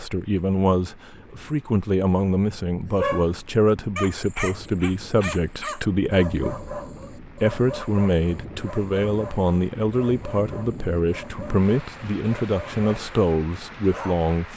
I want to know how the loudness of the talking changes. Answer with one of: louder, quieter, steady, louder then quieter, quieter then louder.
steady.